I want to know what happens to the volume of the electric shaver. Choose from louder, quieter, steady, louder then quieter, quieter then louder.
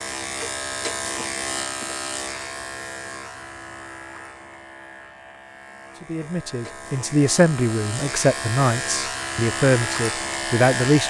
quieter then louder.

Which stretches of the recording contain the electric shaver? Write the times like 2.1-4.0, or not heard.
0.0-11.0.